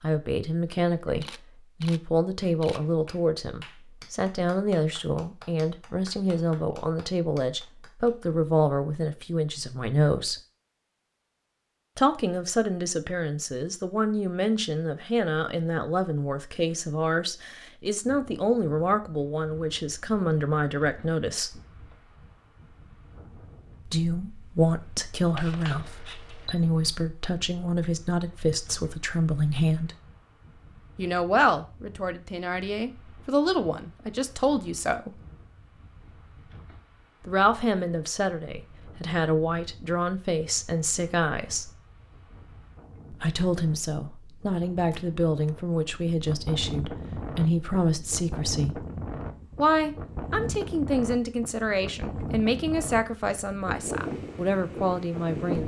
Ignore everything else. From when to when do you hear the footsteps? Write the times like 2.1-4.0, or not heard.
not heard.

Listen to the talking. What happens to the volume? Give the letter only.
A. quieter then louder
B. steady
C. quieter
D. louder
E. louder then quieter
B.